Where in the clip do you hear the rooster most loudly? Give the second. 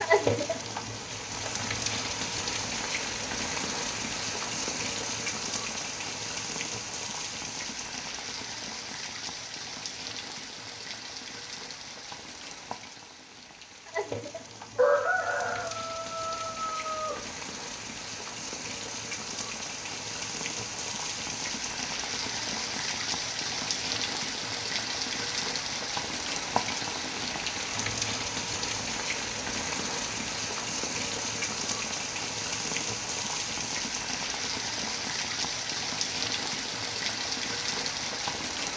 15 s.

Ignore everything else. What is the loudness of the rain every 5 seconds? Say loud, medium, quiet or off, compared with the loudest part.
loud, medium, medium, medium, loud, loud, loud, loud.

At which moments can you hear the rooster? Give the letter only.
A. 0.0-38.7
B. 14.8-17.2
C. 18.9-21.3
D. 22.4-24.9
B.